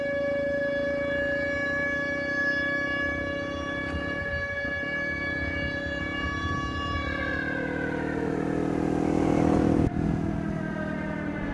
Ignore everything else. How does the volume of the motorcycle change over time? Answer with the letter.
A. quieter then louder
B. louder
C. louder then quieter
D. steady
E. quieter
B.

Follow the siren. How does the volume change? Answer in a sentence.
The volume of the siren goes down.